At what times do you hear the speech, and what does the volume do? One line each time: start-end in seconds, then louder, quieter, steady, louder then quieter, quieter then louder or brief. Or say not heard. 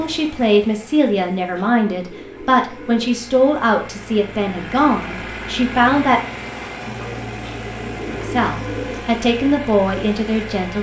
0.0-6.2 steady
8.2-10.7 brief.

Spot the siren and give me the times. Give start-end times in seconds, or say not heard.
not heard.